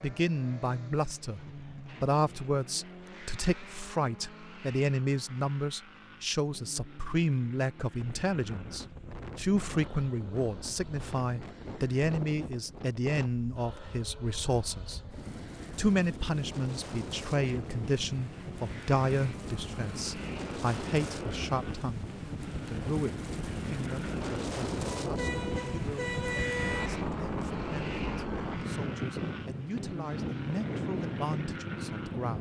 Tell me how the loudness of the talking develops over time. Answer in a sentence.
The volume of the talking goes down.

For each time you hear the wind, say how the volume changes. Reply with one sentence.
You can hear the wind from 8.0 to 32.3 s, getting louder.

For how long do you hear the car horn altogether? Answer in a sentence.
The car horn can be heard for 2 seconds in total.